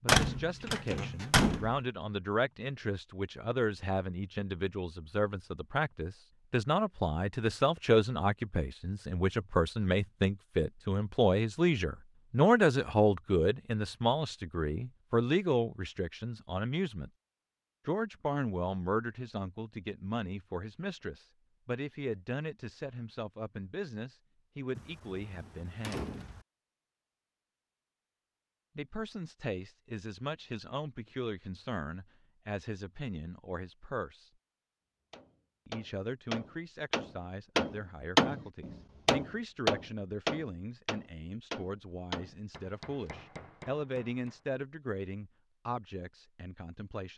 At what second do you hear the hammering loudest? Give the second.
38 s.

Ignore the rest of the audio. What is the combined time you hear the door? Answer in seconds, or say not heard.
3 s.